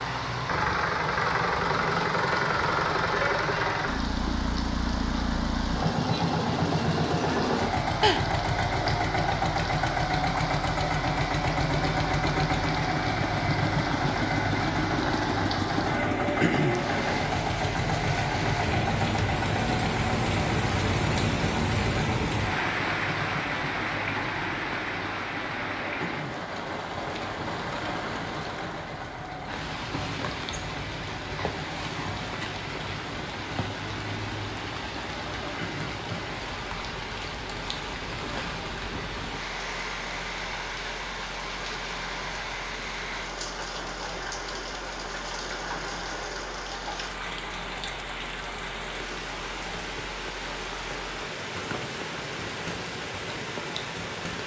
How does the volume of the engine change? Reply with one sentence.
The volume of the engine goes down.